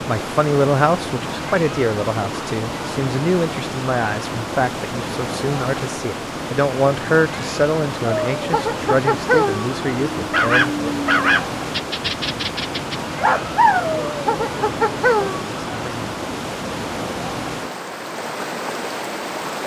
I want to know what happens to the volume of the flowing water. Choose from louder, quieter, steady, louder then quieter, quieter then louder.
steady.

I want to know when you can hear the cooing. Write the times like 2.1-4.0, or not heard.
not heard.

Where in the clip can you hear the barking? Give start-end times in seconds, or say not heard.
8.0-15.4.